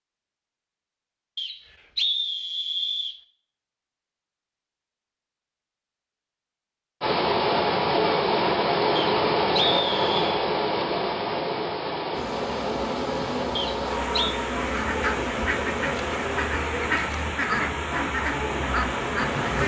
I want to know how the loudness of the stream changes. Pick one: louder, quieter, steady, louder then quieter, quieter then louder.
quieter.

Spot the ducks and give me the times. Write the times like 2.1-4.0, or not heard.
14.6-19.4.